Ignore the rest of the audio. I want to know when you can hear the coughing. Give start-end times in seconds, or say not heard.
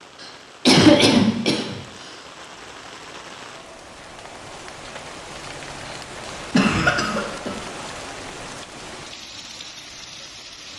0.2-1.8, 6.5-7.5.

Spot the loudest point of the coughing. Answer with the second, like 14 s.
1 s.